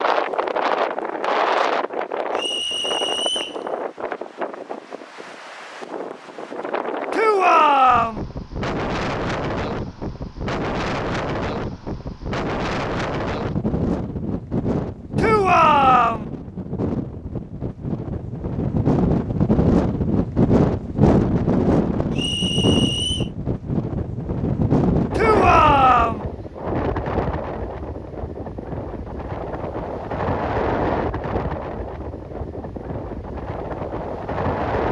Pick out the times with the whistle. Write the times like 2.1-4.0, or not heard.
2.4-3.6, 22.1-23.3.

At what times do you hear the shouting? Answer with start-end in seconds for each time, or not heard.
7.1-8.2, 15.2-16.2, 25.1-26.2.